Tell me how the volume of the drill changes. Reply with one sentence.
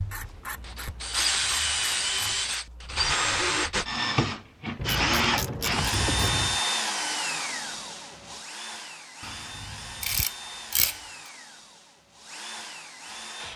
The volume of the drill goes down.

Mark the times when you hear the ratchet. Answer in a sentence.
The ratchet can be heard from 0.1 to 2.6 s, from 4.8 to 6.6 s and from 9.2 to 10.9 s.